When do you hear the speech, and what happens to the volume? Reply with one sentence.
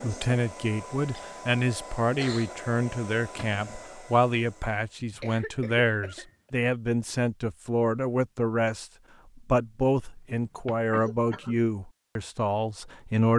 You can hear the speech from 0.0 to 13.3 s, at a steady volume.